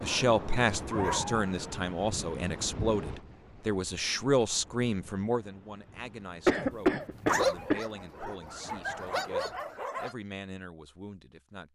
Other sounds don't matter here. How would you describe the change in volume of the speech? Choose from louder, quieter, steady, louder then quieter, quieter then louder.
quieter.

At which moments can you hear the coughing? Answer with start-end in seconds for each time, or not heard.
6.5-7.8.